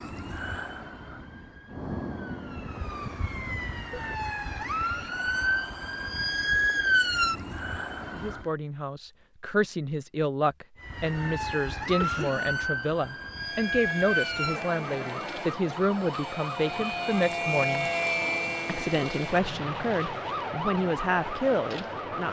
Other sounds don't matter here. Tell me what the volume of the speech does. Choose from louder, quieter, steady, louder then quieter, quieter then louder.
steady.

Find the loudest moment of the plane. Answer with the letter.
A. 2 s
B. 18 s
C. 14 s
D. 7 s
B.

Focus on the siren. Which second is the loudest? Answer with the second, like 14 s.
7 s.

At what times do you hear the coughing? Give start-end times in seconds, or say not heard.
12.0-12.5.